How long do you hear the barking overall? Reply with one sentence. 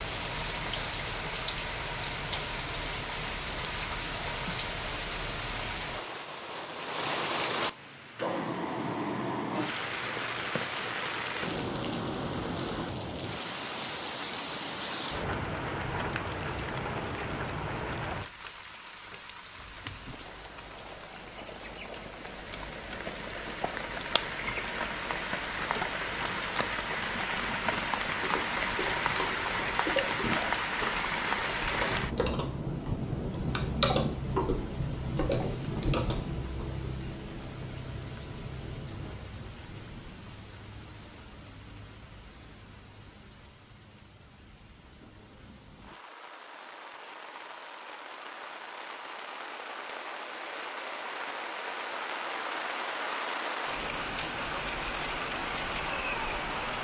The barking can't be heard in this clip.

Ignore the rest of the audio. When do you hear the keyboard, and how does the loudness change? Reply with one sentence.
The keyboard can be heard from 28.1 to 36.9 s, getting louder then quieter.